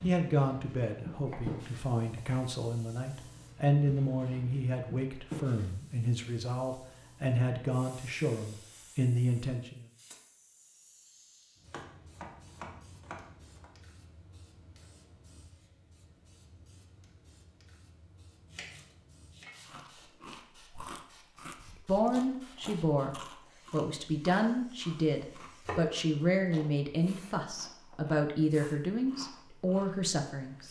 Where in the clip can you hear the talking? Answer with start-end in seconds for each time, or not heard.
0.0-9.8, 21.9-30.6.